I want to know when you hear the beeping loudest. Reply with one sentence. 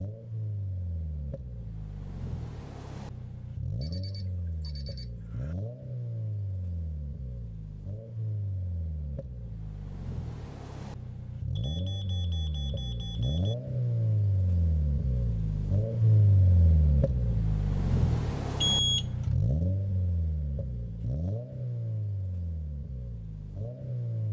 The loudest moment of the beeping is at 19 seconds.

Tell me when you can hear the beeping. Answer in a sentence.
The beeping can be heard from 3.8 to 5.5 s, from 11.6 to 13.6 s and from 18.6 to 19.4 s.